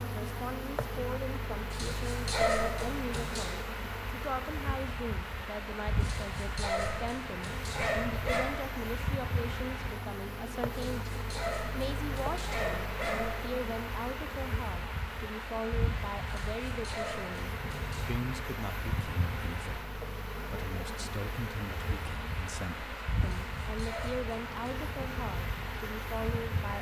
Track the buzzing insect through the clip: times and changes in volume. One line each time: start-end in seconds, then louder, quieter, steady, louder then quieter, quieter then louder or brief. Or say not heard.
0.0-26.7 steady.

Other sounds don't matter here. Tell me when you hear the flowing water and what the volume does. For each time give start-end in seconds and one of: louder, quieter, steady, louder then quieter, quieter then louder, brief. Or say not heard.
0.0-26.7 steady.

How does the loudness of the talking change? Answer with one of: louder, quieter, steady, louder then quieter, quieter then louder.
steady.